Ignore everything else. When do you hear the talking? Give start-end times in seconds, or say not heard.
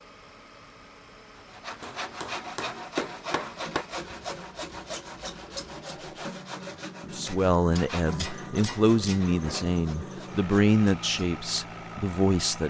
7.1-12.6.